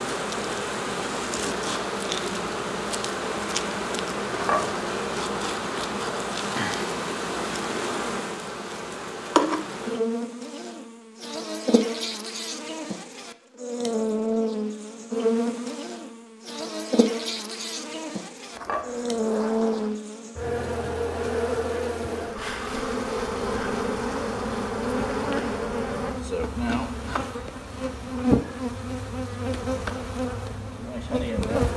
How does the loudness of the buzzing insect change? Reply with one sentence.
The volume of the buzzing insect stays about the same.